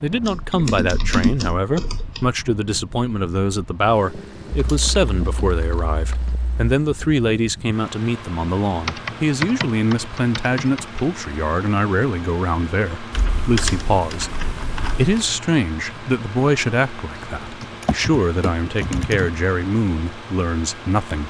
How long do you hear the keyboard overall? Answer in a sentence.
The keyboard can be heard for 11 seconds in total.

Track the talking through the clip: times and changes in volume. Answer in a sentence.
The talking can be heard from 0.0 to 21.2 s, at a steady volume.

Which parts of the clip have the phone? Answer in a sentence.
The phone can't be heard in this clip.